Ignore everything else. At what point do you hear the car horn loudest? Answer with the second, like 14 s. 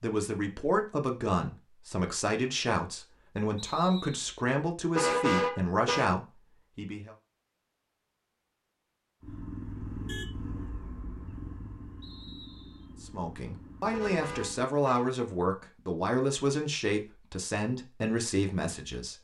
5 s.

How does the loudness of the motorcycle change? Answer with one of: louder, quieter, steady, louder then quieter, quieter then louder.
quieter.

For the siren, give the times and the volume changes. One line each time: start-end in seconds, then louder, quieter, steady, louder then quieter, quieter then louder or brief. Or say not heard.
not heard.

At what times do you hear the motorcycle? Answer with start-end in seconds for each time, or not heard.
9.2-14.7.